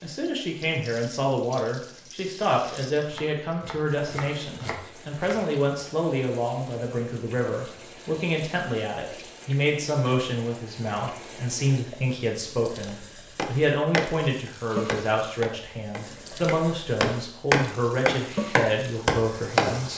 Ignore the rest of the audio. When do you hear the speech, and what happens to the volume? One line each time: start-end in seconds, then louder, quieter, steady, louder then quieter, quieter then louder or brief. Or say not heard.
0.0-19.9 steady.